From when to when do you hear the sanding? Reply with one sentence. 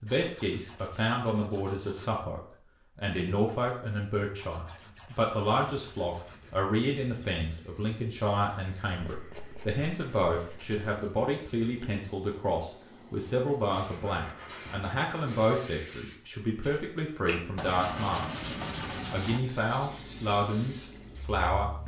The sanding can be heard from 0.1 to 2.2 s, from 4.3 to 6.7 s, from 9.0 to 10.8 s, from 13.8 to 15.4 s and from 17.6 to 19.4 s.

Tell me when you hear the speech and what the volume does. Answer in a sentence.
You can hear the speech from 0.0 to 18.4 s, at a steady volume; and briefly from 19.1 to 21.8 s.